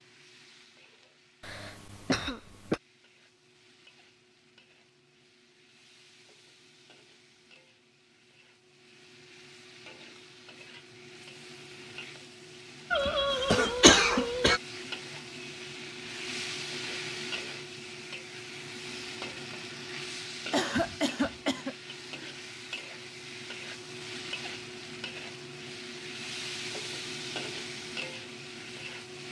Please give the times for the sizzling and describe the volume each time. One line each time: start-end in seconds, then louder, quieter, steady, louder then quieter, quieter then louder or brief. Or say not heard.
0.0-29.2 louder.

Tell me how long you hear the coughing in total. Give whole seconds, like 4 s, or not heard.
4 s.